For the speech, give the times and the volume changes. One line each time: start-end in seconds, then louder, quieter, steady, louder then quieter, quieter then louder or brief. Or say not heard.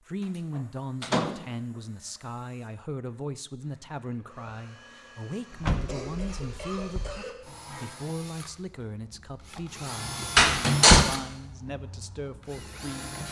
0.1-10.3 steady
10.9-13.2 brief.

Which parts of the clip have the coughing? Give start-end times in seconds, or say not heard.
5.7-7.3.